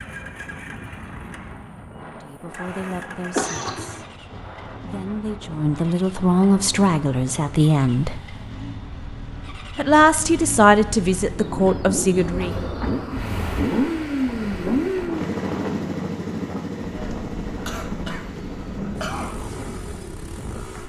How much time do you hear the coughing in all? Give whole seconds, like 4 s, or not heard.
2 s.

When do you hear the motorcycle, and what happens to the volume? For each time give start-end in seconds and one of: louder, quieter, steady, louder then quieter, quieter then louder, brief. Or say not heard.
0.0-20.8 louder then quieter.